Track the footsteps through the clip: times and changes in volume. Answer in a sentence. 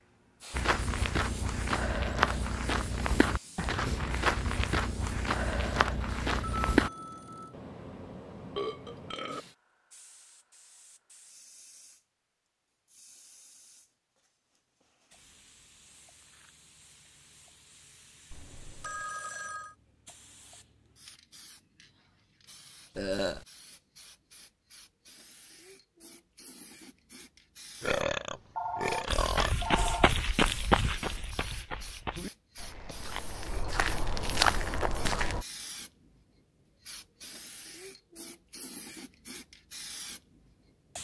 You can hear the footsteps from 0.5 to 6.9 s, at a steady volume; and from 29.1 to 35.5 s, getting quieter then louder.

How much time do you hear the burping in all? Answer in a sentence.
The burping can be heard for 4 seconds in total.